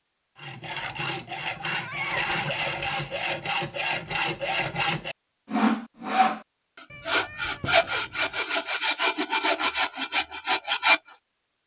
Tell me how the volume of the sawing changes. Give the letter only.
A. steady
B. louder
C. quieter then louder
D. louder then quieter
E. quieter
B.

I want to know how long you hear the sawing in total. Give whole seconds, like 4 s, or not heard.
11 s.